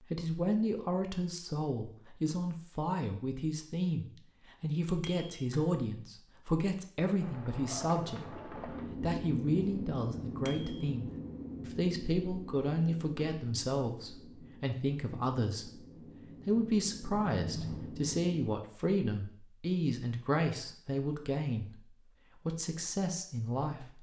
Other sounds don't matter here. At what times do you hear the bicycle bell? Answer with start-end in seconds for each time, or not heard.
5.0-5.5, 10.4-10.8, 17.2-17.9.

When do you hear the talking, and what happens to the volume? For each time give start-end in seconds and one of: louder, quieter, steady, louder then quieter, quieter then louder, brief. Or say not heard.
0.0-15.8 steady
16.4-23.9 steady.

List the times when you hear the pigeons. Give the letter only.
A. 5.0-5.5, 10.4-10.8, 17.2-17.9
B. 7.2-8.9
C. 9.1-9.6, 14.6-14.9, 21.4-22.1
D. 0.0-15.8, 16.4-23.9
B.